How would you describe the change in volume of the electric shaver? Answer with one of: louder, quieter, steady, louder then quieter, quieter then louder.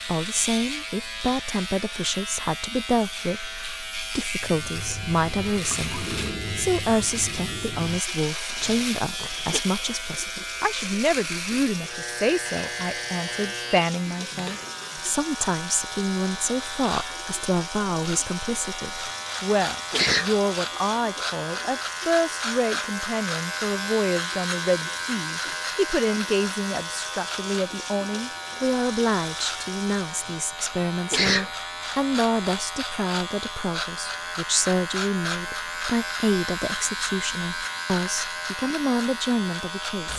steady.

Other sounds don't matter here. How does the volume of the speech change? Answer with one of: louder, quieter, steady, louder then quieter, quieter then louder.
steady.